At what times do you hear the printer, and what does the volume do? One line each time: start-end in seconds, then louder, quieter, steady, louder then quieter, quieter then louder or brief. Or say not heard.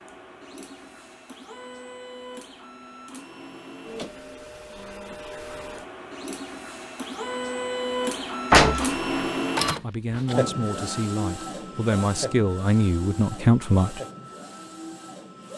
0.0-15.5 louder then quieter.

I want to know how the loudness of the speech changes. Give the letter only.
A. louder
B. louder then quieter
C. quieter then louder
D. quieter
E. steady
A.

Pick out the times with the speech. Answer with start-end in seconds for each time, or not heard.
9.8-14.0.